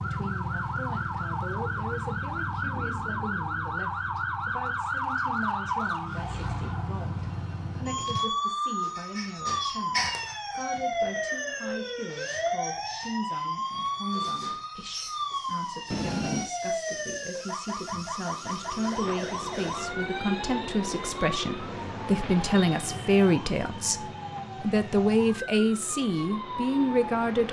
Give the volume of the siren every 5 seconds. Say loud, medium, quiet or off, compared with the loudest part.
loud, loud, loud, loud, medium, medium.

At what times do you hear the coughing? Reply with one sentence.
You can't hear the coughing here.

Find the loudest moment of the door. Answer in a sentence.
The volume of the door peaks at 16 seconds.